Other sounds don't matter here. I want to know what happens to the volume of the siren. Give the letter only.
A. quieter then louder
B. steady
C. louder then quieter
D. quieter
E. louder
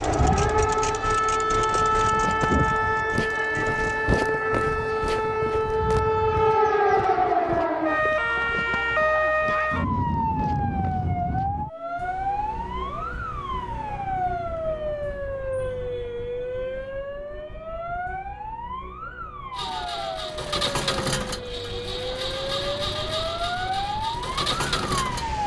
D.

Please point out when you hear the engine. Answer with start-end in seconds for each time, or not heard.
0.0-4.0, 19.6-25.4.